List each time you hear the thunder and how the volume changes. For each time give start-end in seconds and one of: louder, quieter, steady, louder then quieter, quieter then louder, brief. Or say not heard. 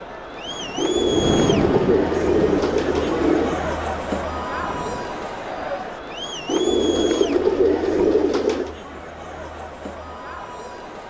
0.5-5.1 quieter.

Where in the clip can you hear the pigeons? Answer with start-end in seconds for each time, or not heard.
0.8-3.6, 6.5-8.8.